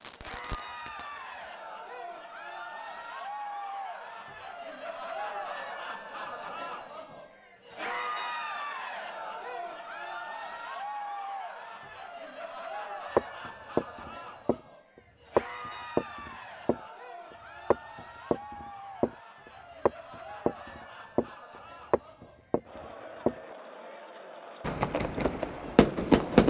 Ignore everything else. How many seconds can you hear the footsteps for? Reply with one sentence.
You can hear the footsteps for 7 seconds altogether.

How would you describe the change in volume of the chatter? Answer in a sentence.
The volume of the chatter goes down.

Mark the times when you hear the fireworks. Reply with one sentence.
The fireworks can be heard from 0.0 to 1.8 s and from 24.6 to 26.4 s.